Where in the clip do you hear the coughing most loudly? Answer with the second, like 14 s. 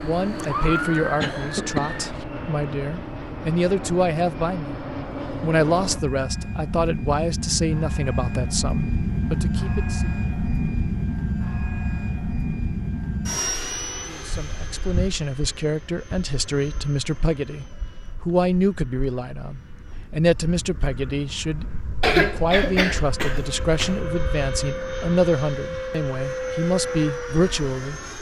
22 s.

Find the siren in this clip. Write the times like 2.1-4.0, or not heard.
0.0-1.9.